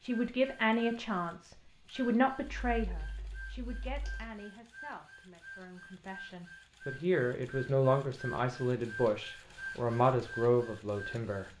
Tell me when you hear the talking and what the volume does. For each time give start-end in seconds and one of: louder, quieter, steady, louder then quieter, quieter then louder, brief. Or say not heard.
0.0-11.5 quieter then louder.